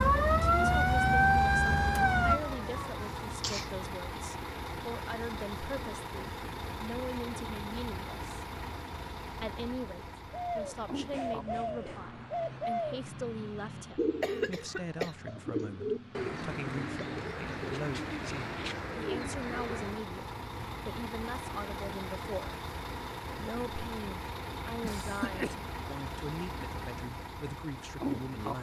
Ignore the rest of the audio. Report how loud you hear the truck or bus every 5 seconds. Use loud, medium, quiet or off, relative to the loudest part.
loud, loud, medium, medium, loud, loud.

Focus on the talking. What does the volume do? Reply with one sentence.
The volume of the talking stays about the same.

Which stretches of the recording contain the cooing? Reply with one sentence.
You can hear the cooing from 10.3 to 20.1 s.